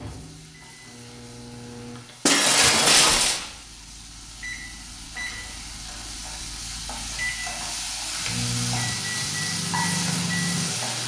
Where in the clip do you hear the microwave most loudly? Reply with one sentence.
The loudest moment of the microwave is at 10 seconds.